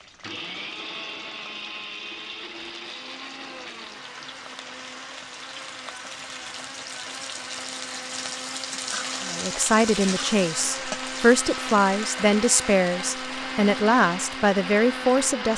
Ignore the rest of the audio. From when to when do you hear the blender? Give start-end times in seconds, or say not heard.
0.0-15.5.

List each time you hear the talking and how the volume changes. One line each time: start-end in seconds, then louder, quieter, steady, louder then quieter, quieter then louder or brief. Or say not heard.
9.2-15.5 steady.